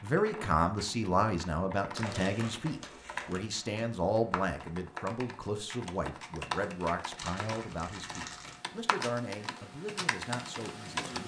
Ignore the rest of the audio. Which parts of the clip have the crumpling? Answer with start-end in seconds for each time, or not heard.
1.9-3.4, 7.2-8.6.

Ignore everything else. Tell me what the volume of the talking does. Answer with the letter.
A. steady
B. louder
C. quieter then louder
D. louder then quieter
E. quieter
E.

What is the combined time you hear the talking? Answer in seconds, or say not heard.
11 s.